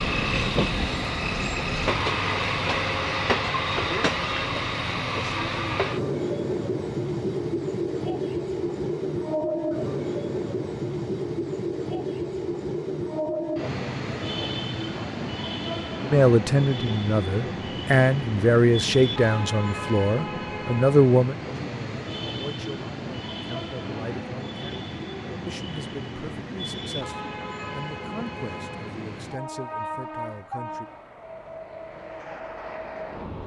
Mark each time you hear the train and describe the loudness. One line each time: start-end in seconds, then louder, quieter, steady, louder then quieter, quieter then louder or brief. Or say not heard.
0.0-33.4 quieter.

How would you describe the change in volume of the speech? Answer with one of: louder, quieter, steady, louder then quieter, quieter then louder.
quieter.